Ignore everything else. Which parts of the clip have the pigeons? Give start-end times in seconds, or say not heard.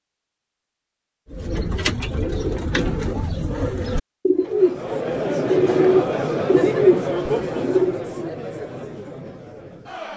1.3-8.0.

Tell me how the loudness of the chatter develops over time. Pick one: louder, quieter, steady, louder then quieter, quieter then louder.
quieter.